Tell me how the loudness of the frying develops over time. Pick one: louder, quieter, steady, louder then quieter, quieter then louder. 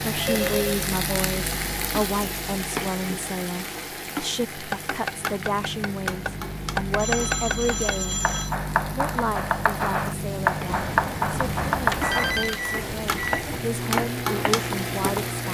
quieter then louder.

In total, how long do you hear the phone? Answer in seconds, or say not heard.
4 s.